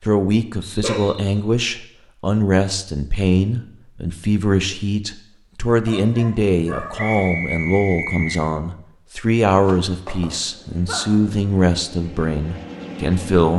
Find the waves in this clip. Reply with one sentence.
You can't hear the waves here.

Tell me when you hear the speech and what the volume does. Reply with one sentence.
You can hear the speech from 0.0 to 13.5 s, at a steady volume.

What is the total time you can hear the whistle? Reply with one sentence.
The whistle can be heard for 2 seconds in total.